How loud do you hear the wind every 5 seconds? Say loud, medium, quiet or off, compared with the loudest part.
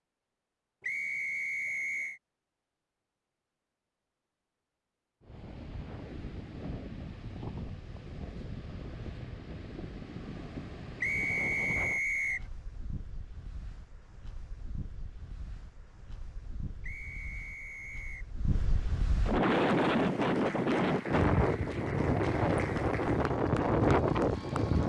off, quiet, quiet, medium, loud.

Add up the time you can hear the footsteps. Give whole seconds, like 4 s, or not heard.
not heard.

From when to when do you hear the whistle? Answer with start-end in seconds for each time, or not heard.
0.8-2.2, 11.0-12.4, 16.8-18.3.